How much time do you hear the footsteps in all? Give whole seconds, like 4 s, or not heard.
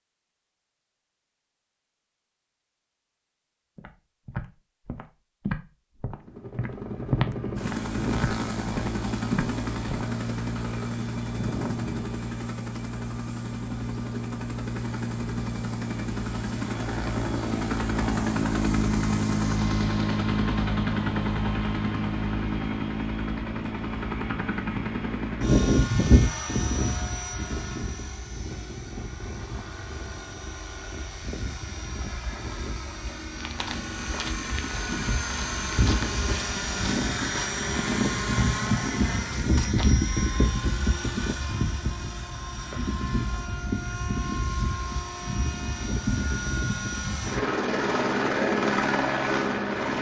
13 s.